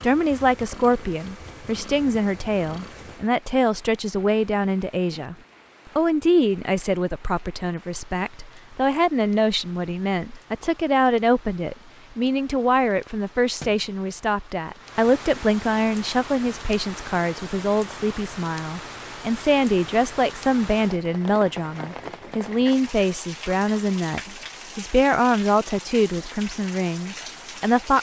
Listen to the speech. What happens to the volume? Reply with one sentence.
The volume of the speech stays about the same.